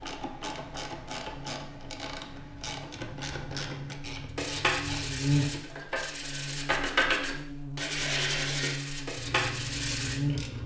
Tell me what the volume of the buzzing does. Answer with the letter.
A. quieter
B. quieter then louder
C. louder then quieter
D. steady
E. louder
C.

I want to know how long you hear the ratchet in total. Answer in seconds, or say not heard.
7 s.